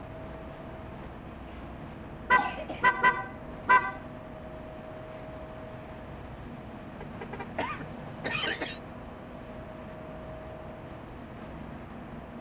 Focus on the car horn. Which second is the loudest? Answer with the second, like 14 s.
3 s.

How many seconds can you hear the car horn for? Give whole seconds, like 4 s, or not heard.
3 s.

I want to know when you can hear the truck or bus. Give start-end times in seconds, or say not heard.
0.0-12.3.